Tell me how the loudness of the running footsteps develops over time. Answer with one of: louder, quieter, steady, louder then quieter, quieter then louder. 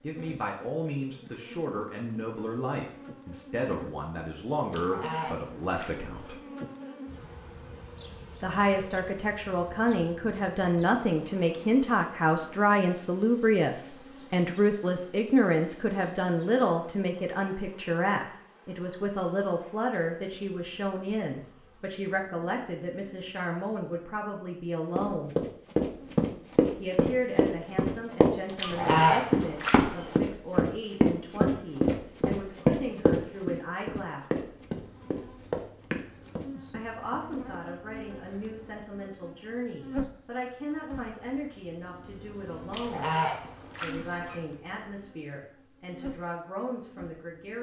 quieter.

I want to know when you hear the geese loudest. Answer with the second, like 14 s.
29 s.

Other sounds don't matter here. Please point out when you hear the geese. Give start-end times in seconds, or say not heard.
4.7-6.3, 28.6-30.1, 42.7-44.4.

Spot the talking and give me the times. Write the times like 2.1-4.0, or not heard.
0.0-6.3, 8.4-25.4, 26.8-34.5, 36.7-43.1, 43.8-47.5.